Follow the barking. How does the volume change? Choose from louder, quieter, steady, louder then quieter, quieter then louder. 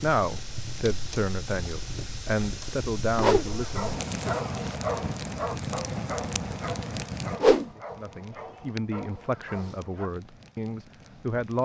quieter.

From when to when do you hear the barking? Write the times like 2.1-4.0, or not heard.
3.5-10.1.